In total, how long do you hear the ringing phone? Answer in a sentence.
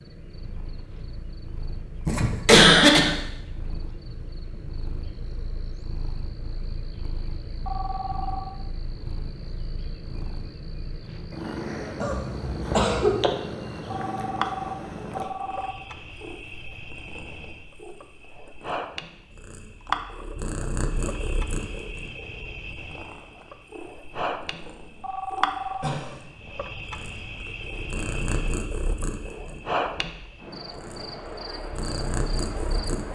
The ringing phone can be heard for 4 seconds in total.